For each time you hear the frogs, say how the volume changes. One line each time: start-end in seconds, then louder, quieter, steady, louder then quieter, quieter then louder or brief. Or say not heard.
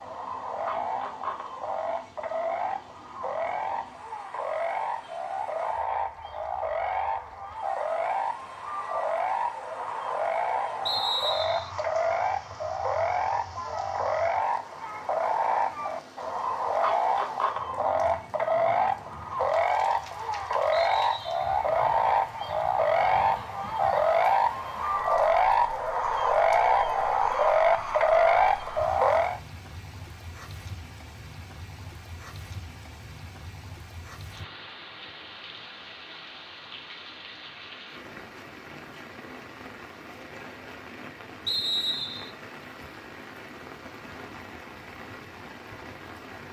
0.0-29.4 louder.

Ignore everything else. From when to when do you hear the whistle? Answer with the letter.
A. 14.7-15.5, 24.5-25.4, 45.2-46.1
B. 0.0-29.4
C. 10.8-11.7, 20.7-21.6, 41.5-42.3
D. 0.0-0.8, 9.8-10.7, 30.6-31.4
C.